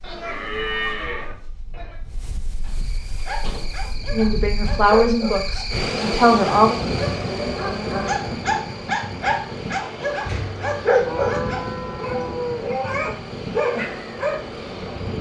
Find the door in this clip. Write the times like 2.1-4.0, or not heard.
2.6-3.8, 10.2-10.7.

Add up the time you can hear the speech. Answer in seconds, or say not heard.
3 s.